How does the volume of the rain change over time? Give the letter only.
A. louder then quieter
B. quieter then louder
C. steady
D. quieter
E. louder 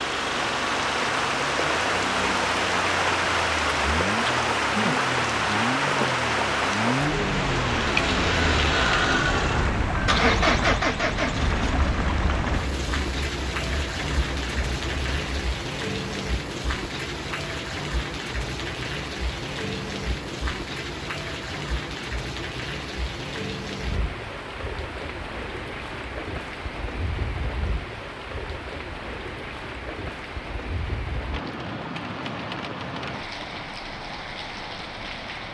D.